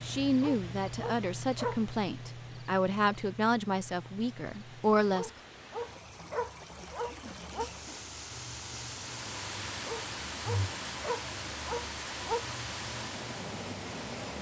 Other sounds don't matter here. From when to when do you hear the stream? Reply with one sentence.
The stream can be heard from 0.0 to 14.3 s.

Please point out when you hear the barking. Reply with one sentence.
The barking can be heard from 0.4 to 1.8 s, from 5.1 to 7.7 s and from 9.8 to 12.4 s.